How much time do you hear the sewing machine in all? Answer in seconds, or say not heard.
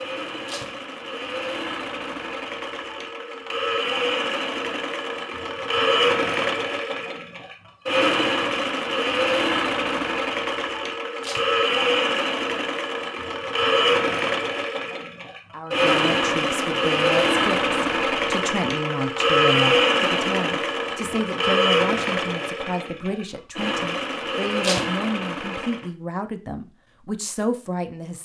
26 s.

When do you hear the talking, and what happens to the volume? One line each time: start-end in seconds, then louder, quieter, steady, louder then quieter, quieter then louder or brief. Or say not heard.
15.5-28.2 steady.